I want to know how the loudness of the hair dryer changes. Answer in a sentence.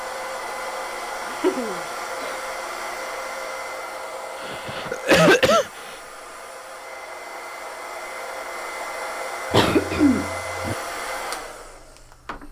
The loudness of the hair dryer goes down, then up.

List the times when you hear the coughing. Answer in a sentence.
You can hear the coughing from 1.2 to 2.4 s, from 4.4 to 6.0 s and from 9.5 to 10.8 s.